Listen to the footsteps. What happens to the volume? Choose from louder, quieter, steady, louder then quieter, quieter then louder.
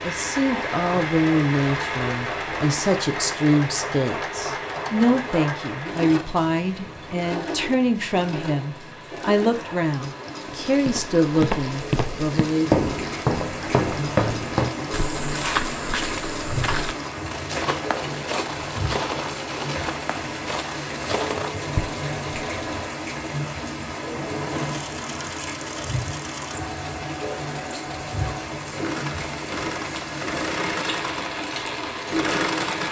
quieter.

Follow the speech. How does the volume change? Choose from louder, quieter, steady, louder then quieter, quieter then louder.
steady.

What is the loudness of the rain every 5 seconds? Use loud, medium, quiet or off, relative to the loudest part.
loud, medium, loud, loud, loud, loud, loud.